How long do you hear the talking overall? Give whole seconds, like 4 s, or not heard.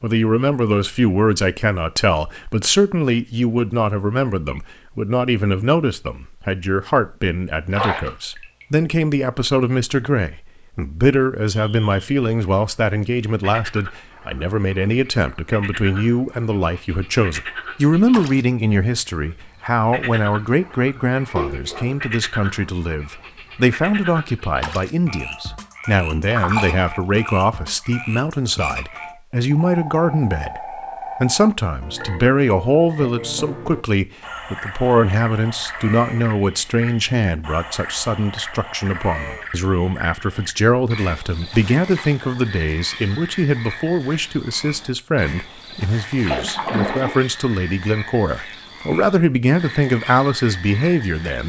51 s.